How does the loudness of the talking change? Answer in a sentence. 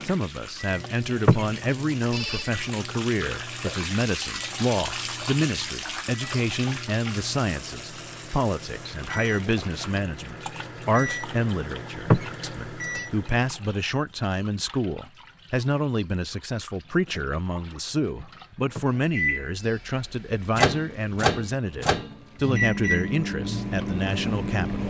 The volume of the talking stays about the same.